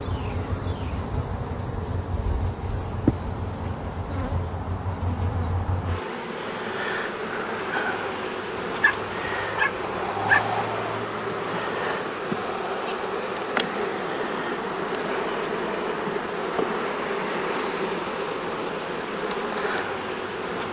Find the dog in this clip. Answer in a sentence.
The dog can be heard from 8.6 to 10.4 s.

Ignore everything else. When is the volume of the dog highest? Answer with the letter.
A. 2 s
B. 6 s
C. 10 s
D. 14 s
C.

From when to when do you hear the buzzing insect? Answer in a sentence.
The buzzing insect can be heard from 0.0 to 20.6 s.